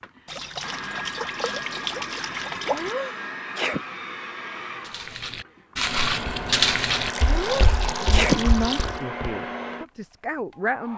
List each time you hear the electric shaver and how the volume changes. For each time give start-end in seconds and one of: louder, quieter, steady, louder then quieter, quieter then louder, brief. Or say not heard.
not heard.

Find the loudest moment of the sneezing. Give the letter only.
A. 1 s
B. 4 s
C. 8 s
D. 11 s
C.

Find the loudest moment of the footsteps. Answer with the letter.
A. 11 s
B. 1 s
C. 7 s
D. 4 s
C.